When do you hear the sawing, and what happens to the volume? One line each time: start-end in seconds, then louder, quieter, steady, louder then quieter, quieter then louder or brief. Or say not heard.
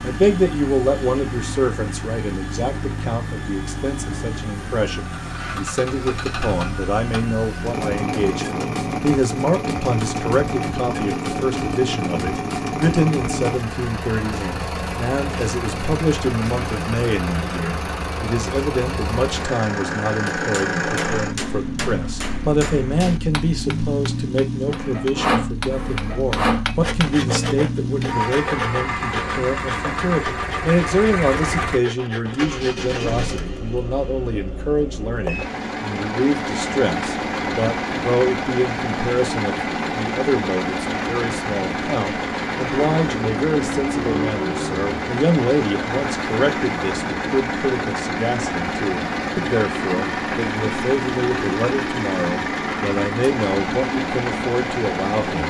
24.6-33.4 quieter.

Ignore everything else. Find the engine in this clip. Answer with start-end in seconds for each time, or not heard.
0.0-55.4.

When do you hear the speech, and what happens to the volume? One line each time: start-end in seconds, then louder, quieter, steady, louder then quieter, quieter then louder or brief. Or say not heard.
0.0-55.4 steady.